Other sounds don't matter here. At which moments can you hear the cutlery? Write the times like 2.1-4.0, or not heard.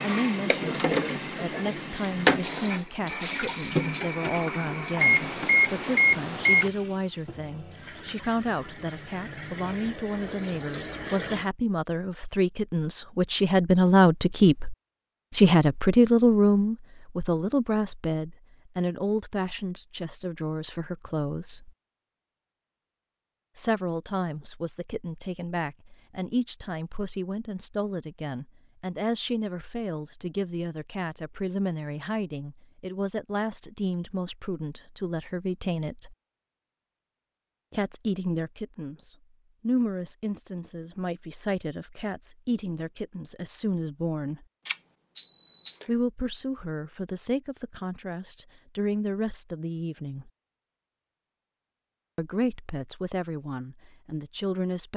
not heard.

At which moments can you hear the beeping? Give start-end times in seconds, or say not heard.
5.0-6.7, 44.6-45.9.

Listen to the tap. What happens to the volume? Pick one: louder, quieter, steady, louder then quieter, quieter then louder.
quieter then louder.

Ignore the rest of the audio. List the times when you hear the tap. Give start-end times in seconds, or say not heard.
0.0-11.5.